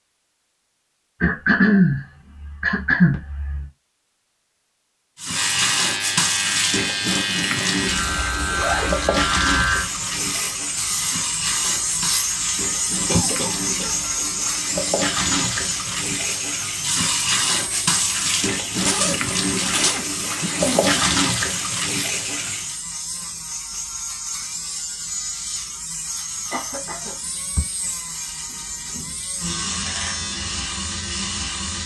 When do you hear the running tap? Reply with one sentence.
You can hear the running tap from 5.2 to 22.8 s.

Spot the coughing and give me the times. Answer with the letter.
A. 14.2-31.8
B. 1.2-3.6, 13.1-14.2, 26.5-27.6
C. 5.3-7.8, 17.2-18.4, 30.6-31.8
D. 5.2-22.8
B.